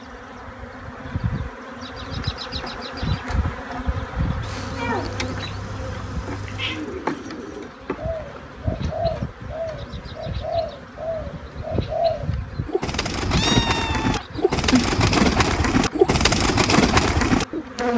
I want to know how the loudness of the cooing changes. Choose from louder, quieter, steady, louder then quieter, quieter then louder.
louder.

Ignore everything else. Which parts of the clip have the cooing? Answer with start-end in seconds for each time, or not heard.
6.6-17.6.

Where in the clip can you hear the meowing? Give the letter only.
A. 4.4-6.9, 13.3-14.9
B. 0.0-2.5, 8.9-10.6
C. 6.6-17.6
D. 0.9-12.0
A.